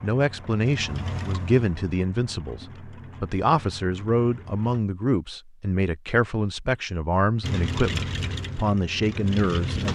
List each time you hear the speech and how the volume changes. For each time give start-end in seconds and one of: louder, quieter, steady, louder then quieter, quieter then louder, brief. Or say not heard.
0.0-9.9 steady.